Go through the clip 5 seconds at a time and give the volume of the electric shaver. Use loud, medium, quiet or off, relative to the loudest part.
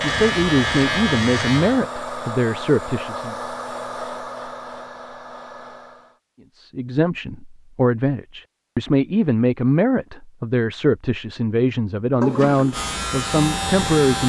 loud, off, loud.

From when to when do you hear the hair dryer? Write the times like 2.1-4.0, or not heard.
0.0-6.2.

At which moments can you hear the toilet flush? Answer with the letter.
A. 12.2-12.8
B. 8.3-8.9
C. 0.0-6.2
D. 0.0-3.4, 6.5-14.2
A.